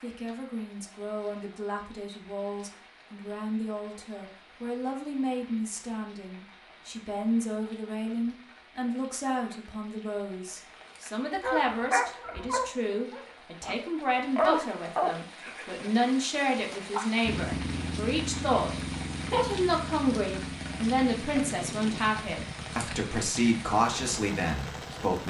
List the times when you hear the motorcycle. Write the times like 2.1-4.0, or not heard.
17.2-25.1.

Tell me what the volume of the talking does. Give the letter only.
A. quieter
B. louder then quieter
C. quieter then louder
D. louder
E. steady
D.